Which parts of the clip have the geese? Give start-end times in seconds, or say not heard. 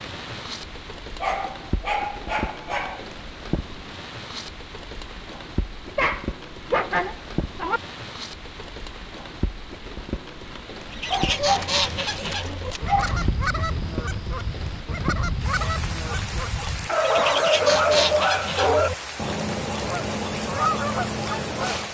10.9-21.8.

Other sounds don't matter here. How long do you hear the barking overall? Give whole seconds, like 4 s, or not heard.
8 s.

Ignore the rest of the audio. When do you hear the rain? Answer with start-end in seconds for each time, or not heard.
0.0-21.8.